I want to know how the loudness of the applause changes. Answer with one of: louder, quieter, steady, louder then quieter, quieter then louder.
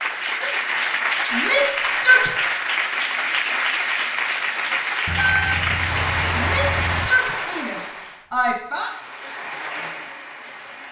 quieter.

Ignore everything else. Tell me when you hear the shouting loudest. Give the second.
2 s.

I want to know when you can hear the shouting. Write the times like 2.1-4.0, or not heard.
1.3-2.3, 6.3-8.9.